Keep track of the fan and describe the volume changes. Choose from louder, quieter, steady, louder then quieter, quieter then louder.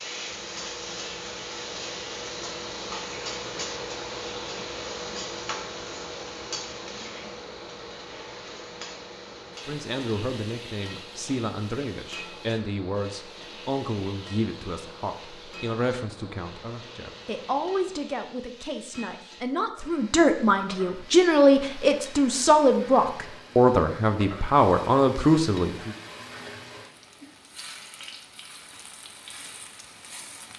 quieter.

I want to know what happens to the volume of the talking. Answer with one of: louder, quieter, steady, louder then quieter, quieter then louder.
louder.